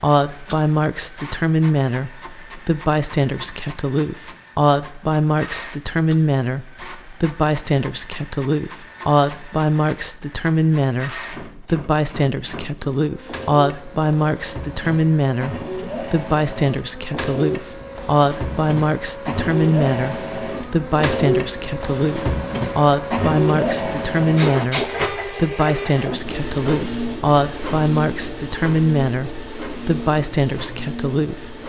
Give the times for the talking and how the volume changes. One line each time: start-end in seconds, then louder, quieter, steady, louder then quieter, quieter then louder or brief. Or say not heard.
0.0-31.5 steady.